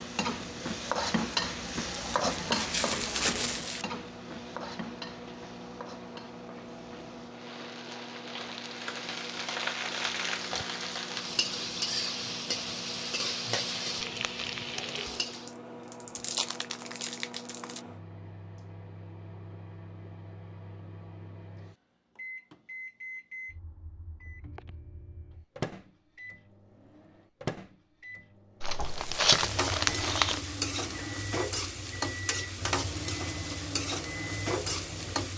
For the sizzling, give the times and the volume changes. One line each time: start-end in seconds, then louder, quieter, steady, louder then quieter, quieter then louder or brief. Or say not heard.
0.0-15.5 quieter then louder
28.9-35.3 steady.